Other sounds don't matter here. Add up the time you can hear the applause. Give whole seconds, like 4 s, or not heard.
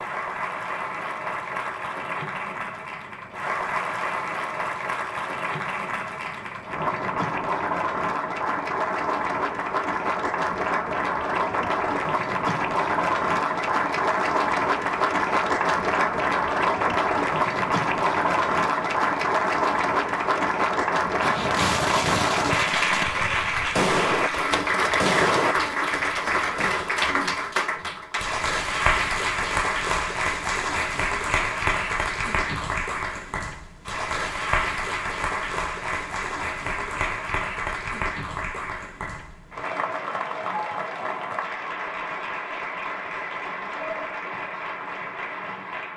46 s.